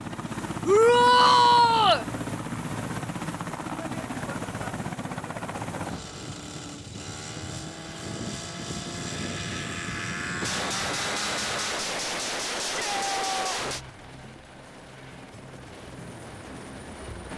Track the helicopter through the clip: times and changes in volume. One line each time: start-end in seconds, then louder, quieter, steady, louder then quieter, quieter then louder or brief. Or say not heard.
0.0-17.3 quieter.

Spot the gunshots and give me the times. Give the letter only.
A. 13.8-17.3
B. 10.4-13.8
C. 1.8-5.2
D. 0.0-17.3
B.